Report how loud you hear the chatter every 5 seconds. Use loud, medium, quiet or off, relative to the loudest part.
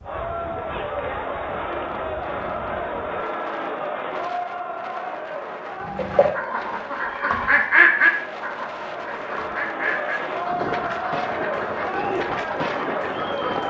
loud, medium, loud.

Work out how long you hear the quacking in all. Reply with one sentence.
The quacking can be heard for 8 seconds in total.